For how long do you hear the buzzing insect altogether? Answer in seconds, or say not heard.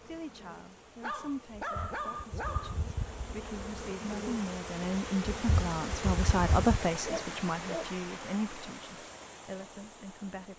7 s.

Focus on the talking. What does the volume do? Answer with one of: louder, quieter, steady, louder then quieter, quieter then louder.
louder then quieter.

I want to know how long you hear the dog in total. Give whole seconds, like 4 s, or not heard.
3 s.